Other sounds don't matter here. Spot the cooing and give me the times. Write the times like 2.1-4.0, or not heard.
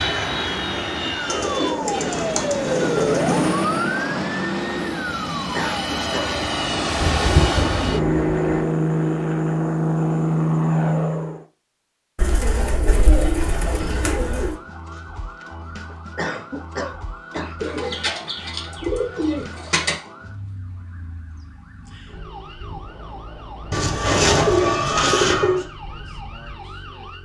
1.2-3.5, 7.0-8.7, 12.2-14.6, 17.6-19.9, 23.7-25.6.